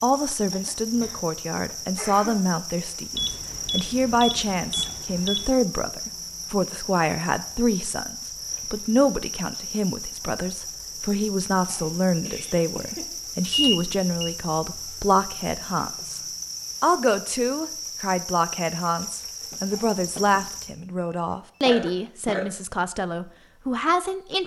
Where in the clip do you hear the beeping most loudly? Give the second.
14 s.